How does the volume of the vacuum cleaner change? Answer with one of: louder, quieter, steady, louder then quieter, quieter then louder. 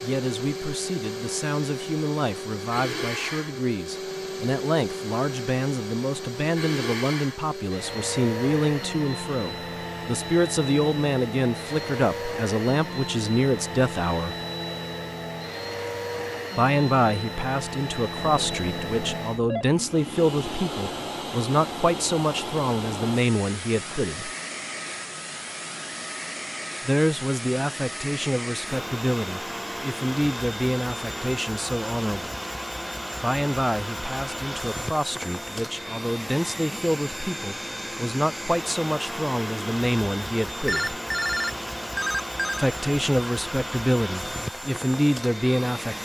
steady.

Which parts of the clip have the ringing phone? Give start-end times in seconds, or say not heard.
18.1-19.6, 40.6-42.7.